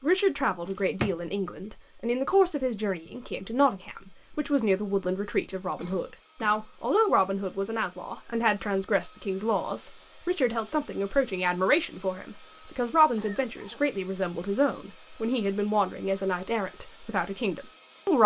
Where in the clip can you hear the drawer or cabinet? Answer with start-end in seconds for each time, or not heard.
0.7-1.1.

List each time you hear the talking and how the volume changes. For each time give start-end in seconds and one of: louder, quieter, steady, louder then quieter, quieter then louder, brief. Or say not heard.
0.0-18.2 steady.